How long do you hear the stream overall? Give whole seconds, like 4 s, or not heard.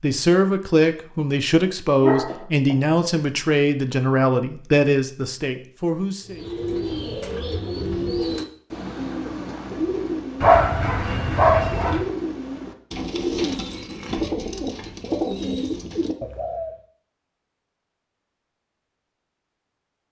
not heard.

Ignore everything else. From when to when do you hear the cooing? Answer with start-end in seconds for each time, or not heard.
6.2-16.7.